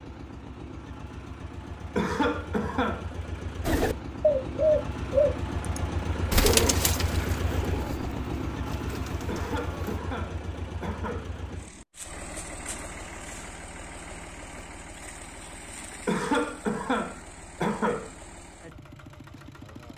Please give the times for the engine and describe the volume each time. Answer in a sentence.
You can hear the engine from 0.0 to 19.9 s, getting louder then quieter.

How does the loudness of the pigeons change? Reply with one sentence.
The volume of the pigeons goes down.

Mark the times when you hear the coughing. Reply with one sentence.
The coughing can be heard from 1.9 to 3.1 s, from 9.2 to 11.3 s and from 16.1 to 18.1 s.